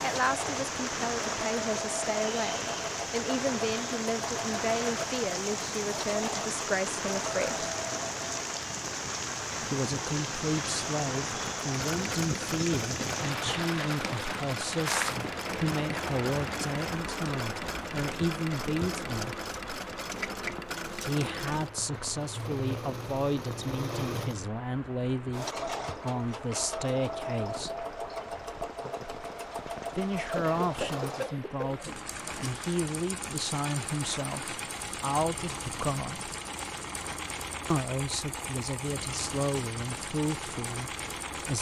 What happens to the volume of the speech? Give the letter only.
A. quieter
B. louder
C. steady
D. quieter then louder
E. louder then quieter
C.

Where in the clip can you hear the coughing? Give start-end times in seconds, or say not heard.
30.4-32.0.